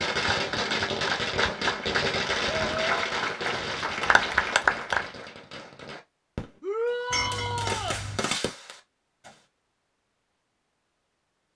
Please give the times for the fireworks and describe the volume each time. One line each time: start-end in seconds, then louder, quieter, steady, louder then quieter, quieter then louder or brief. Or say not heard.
0.0-9.3 quieter then louder.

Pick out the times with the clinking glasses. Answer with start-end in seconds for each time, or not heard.
7.1-8.2.